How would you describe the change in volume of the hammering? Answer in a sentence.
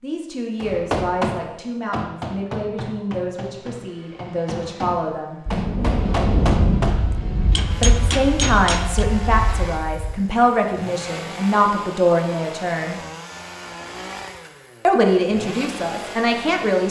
The volume of the hammering goes down, then up.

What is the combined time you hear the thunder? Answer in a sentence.
The thunder can be heard for 5 seconds in total.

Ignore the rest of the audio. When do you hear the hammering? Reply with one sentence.
The hammering can be heard from 0.6 to 9.1 s.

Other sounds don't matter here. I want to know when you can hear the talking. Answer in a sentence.
You can hear the talking from 0.0 to 5.4 s, from 7.8 to 13.0 s and from 14.8 to 16.8 s.